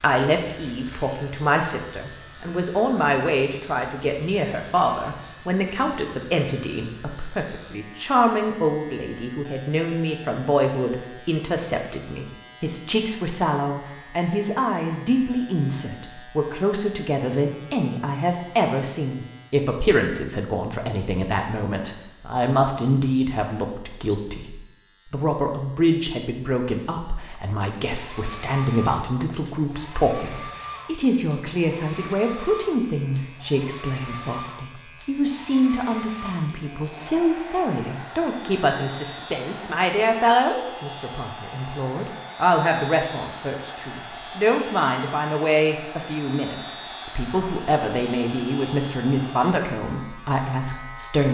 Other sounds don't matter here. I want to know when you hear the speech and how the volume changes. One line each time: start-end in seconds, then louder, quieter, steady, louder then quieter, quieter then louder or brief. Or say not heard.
0.0-51.2 steady.